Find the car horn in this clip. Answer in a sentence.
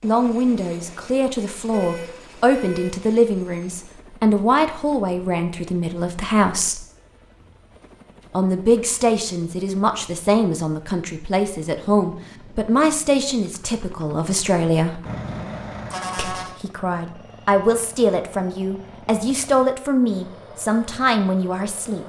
The car horn can be heard from 1.5 to 3.0 s and from 15.1 to 16.6 s.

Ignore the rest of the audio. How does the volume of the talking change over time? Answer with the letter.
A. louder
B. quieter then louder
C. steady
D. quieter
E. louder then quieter
C.